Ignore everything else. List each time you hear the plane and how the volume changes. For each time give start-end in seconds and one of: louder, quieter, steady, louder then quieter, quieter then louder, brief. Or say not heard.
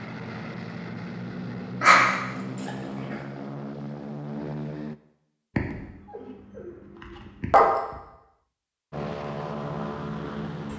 0.0-5.0 steady
8.9-10.7 brief.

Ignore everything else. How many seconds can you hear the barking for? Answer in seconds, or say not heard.
4 s.